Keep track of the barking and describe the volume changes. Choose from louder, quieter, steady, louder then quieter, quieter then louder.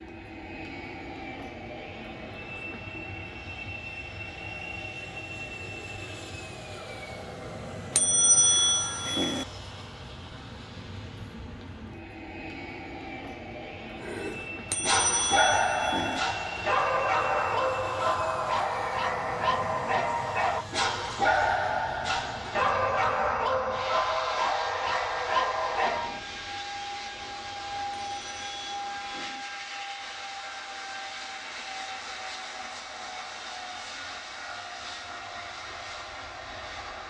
steady.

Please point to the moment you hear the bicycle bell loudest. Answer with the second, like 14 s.
8 s.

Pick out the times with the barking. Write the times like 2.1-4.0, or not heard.
14.0-26.1.